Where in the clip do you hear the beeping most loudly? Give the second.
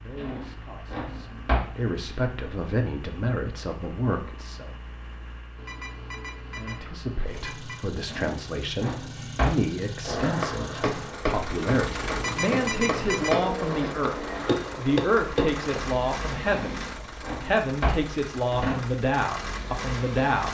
13 s.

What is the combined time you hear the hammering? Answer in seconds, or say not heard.
6 s.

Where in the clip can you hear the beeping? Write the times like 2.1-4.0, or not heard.
5.5-7.8, 12.2-13.4.